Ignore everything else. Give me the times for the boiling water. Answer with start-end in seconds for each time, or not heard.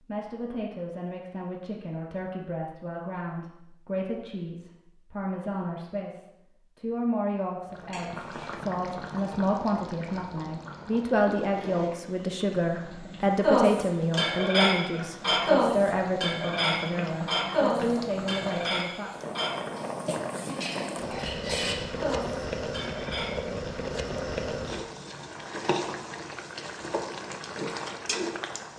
7.7-28.7.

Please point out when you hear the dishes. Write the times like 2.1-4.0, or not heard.
13.4-23.4.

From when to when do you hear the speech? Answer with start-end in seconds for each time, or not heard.
0.0-19.1.